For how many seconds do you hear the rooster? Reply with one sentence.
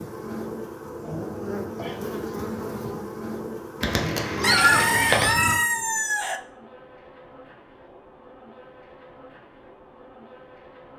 You can hear the rooster for 2 seconds altogether.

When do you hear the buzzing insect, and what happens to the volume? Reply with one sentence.
You can hear the buzzing insect from 0.0 to 10.9 s, getting quieter.